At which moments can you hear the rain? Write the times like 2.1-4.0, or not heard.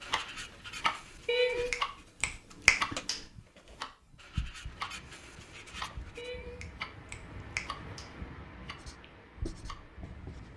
4.6-10.5.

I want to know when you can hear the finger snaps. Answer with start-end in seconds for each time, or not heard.
1.2-3.2, 6.2-8.2.